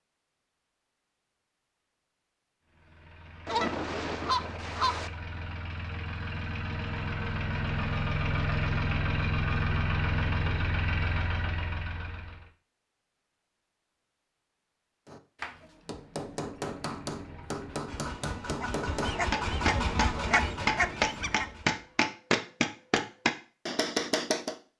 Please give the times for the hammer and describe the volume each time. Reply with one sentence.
The hammer can be heard from 15.1 to 24.6 s, getting louder.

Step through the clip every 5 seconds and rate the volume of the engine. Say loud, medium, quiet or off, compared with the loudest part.
quiet, loud, loud, medium, medium.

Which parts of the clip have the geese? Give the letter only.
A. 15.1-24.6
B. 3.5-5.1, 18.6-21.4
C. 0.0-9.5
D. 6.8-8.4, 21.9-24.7
B.